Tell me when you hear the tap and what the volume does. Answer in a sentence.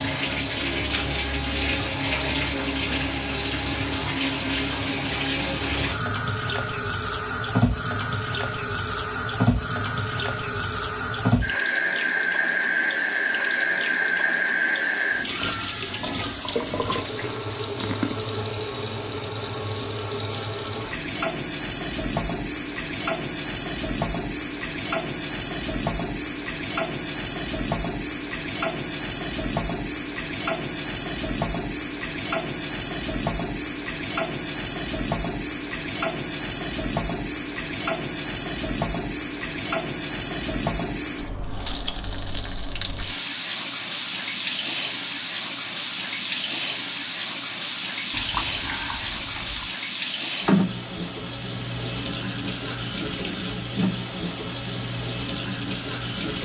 You can hear the tap from 0.0 to 56.4 s, at a steady volume.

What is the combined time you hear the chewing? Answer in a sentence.
The chewing can be heard for 3 seconds in total.